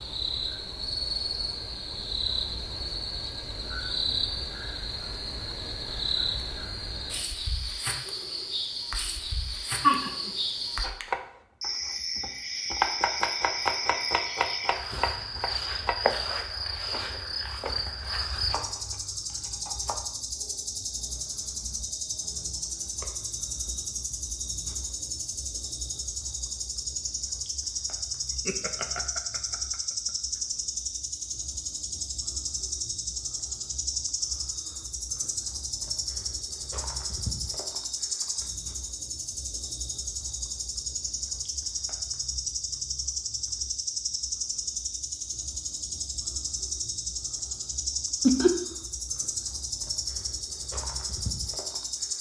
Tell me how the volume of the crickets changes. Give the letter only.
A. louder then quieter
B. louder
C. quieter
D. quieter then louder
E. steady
E.